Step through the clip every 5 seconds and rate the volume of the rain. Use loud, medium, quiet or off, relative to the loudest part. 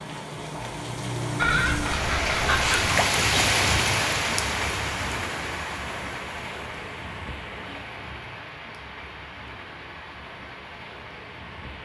loud, medium, quiet.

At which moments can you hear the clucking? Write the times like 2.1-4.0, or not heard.
1.4-3.0.